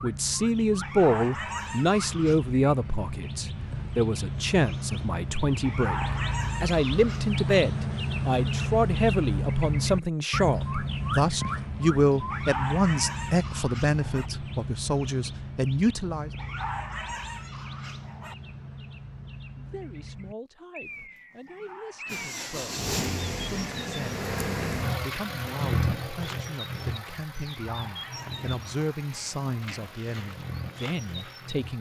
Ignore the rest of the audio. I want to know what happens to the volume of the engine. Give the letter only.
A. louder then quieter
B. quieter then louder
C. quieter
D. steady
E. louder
C.